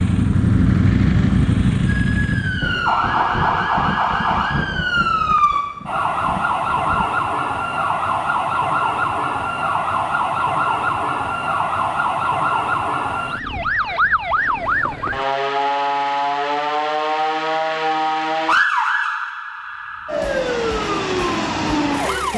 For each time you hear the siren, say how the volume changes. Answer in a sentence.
You can hear the siren from 1.9 to 22.3 s, at a steady volume.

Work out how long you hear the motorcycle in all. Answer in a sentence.
You can hear the motorcycle for 3 seconds altogether.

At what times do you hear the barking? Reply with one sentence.
You can't hear the barking here.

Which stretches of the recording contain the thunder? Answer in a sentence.
The thunder can be heard from 2.6 to 7.1 s.